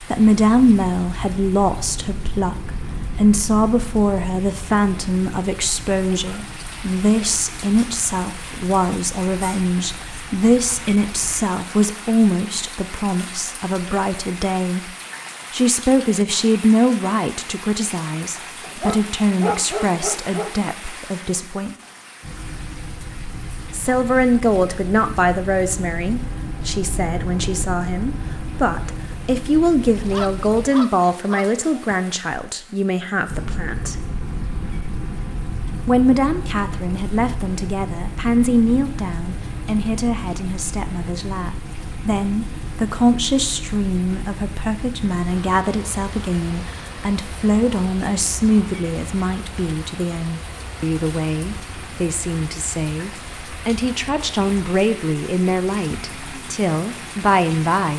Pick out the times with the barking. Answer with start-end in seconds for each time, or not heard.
18.6-20.7, 29.9-31.9.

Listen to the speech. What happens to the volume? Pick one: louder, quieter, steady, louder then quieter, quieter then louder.
steady.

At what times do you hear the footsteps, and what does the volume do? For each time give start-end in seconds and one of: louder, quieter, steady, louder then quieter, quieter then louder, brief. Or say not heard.
not heard.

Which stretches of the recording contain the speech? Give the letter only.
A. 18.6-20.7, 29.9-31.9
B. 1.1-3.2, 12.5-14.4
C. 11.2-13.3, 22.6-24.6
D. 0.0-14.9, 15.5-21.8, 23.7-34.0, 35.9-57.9
D.